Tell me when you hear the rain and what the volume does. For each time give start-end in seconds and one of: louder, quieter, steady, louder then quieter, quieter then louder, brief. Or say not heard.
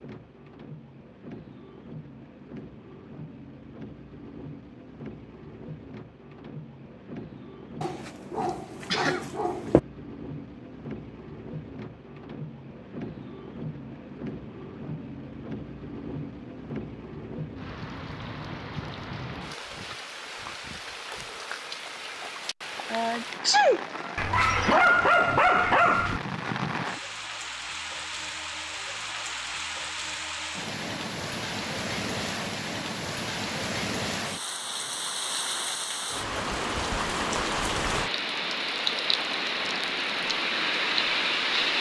0.0-41.7 louder.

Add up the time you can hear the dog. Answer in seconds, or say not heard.
4 s.